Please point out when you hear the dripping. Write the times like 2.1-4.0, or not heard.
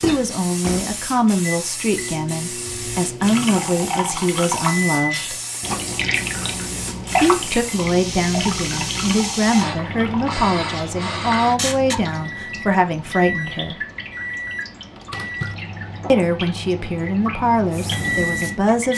3.2-18.9.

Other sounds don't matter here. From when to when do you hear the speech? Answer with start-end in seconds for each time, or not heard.
0.0-5.3, 7.2-13.8, 16.1-18.9.